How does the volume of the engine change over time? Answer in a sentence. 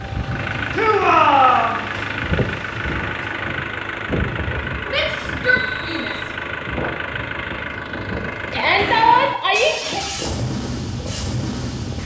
The loudness of the engine stays about the same.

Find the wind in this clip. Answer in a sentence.
You can hear the wind from 0.0 to 12.0 s.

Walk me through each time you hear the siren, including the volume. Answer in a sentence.
The siren can't be heard in this clip.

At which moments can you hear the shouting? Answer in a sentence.
The shouting can be heard from 0.7 to 1.8 s, from 4.8 to 6.3 s and from 8.5 to 10.1 s.